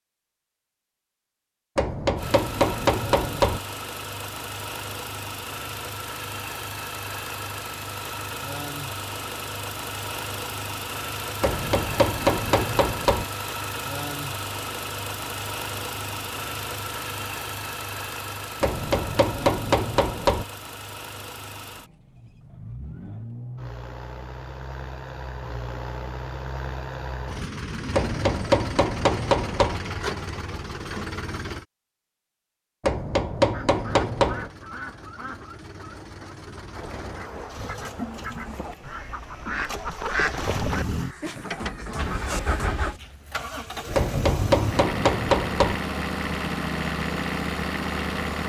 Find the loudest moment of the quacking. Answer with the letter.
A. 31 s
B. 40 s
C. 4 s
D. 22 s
B.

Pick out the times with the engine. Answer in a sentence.
The engine can be heard from 2.1 to 31.6 s and from 33.7 to 48.4 s.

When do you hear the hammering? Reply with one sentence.
The hammering can be heard from 1.8 to 3.6 s, from 11.4 to 13.2 s, from 18.6 to 20.4 s, from 27.9 to 29.8 s, from 32.8 to 34.5 s and from 43.9 to 45.8 s.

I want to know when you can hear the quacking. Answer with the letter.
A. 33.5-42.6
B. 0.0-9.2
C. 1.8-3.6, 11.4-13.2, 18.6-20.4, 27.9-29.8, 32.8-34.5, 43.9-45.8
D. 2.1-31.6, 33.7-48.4
A.